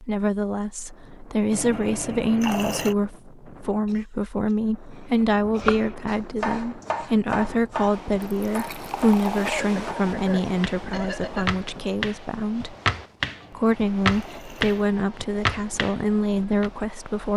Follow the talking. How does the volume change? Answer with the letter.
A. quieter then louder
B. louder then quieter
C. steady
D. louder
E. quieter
C.